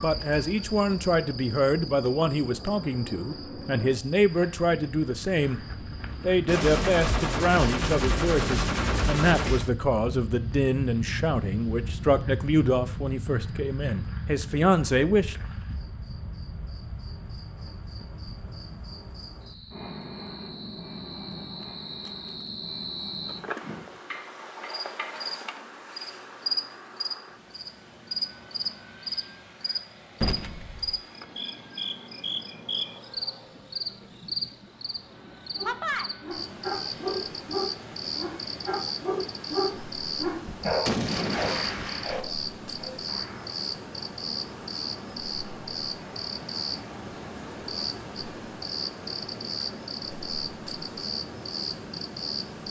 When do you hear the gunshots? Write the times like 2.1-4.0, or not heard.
6.5-9.7, 30.2-31.0, 40.6-42.2.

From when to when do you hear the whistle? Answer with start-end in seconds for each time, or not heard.
not heard.